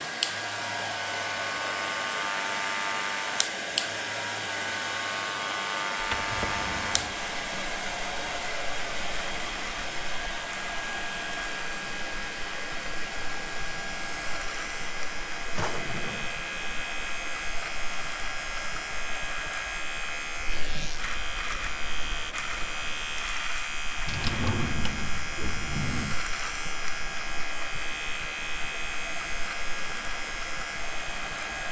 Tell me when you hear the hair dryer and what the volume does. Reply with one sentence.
The hair dryer can be heard from 0.0 to 31.6 s, getting quieter.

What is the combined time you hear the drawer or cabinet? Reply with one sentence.
The drawer or cabinet can be heard for 4 seconds in total.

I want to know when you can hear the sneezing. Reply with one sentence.
You can't hear the sneezing here.